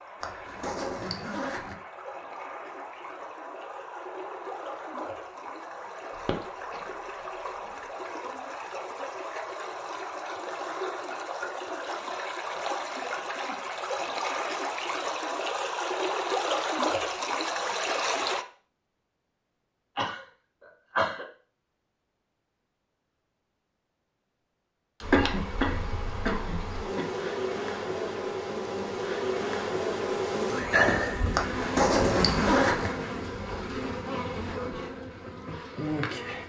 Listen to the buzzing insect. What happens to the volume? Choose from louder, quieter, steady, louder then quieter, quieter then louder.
louder then quieter.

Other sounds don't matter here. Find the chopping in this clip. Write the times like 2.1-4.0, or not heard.
not heard.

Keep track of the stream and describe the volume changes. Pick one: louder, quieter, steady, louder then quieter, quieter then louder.
louder.